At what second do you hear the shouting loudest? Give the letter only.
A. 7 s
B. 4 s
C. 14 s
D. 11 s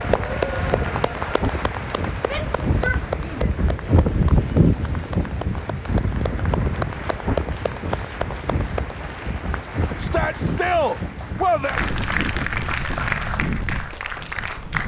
D.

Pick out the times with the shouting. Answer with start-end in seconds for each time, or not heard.
2.2-3.5, 9.9-11.8.